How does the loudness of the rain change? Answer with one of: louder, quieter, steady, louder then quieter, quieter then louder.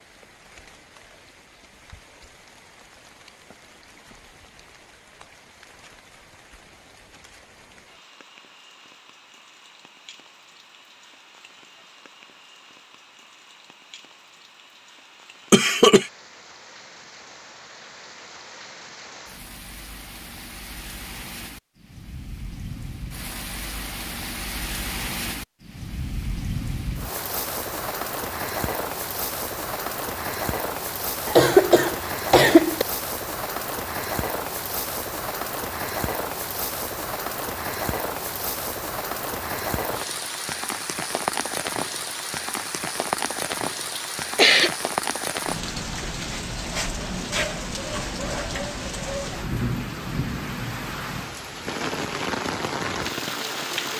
louder.